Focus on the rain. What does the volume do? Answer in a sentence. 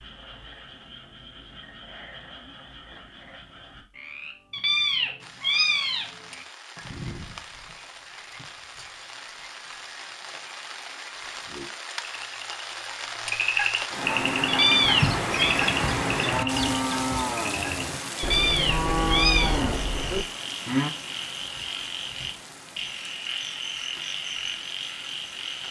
The volume of the rain goes up, then down.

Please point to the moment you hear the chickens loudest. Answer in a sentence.
The volume of the chickens peaks at 15 seconds.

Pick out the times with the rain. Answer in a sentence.
The rain can be heard from 5.2 to 25.6 s.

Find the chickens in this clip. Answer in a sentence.
You can hear the chickens from 14.8 to 17.3 s.